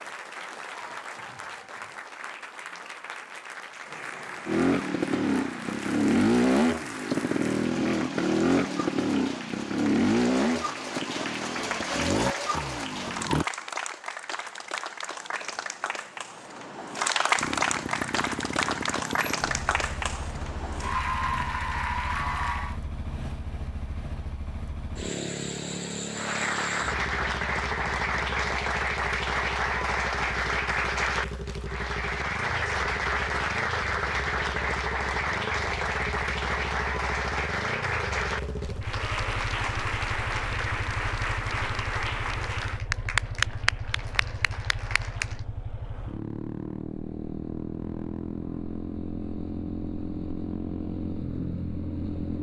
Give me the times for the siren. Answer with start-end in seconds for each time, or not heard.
not heard.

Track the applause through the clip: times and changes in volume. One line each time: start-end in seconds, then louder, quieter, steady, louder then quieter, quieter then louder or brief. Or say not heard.
0.0-22.8 louder
26.1-45.4 steady.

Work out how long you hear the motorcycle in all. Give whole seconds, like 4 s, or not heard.
44 s.